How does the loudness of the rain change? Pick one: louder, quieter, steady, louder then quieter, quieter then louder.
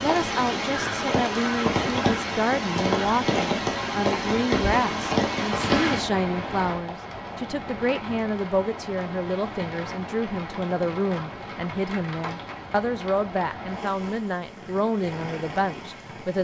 quieter.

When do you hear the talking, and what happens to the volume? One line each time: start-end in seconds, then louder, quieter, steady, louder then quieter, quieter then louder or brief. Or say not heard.
0.0-16.3 steady.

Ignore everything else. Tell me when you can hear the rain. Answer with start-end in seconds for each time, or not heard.
0.0-16.3.